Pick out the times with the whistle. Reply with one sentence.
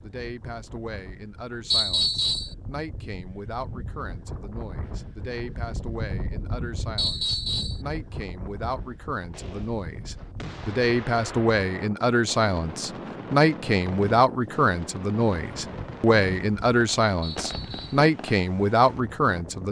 The whistle can be heard from 1.7 to 2.5 s, from 7.0 to 7.8 s and from 17.2 to 18.1 s.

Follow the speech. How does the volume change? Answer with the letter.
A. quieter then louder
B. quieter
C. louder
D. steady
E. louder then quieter
C.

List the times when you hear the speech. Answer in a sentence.
The speech can be heard from 0.0 to 19.6 s.